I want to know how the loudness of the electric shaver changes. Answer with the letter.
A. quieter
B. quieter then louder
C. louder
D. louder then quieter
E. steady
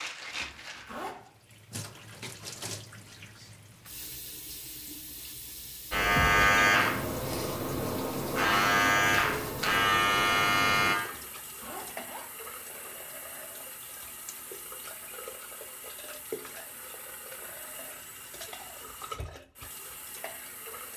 B.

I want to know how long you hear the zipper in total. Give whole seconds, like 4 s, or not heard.
2 s.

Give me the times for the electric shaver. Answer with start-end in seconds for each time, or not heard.
5.9-10.9.